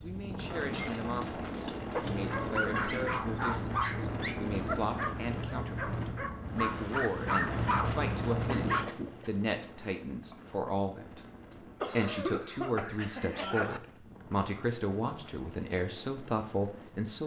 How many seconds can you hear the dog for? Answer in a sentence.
You can hear the dog for 7 seconds altogether.